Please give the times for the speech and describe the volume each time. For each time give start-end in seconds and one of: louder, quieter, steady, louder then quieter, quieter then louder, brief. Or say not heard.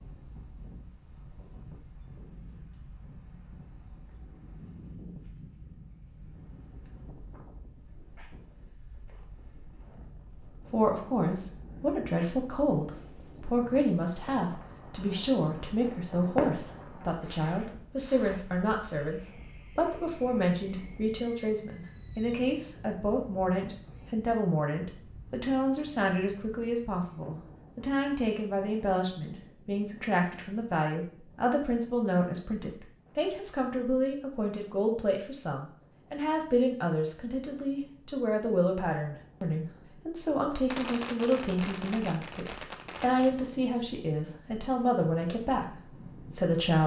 10.7-46.8 steady.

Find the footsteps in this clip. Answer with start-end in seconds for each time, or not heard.
not heard.